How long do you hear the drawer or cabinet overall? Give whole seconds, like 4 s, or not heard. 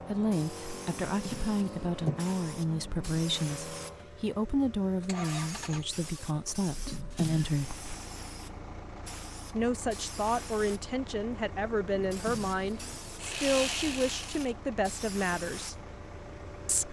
3 s.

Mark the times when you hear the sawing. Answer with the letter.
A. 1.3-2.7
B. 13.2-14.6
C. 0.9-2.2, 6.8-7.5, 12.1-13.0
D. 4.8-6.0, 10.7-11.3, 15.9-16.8
B.